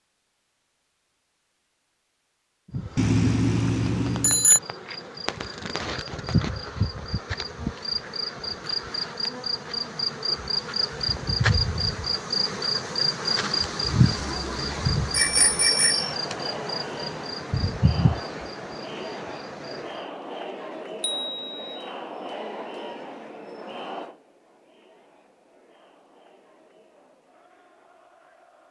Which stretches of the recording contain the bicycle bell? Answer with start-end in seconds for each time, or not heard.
3.0-4.6, 15.1-16.1, 21.0-21.8.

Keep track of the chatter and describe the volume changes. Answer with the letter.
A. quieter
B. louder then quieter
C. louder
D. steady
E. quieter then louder
A.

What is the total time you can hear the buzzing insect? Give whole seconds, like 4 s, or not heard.
17 s.